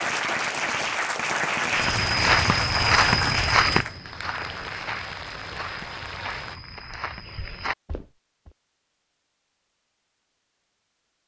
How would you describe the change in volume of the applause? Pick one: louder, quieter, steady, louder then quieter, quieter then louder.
quieter.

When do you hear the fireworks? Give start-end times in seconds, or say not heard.
0.0-3.6.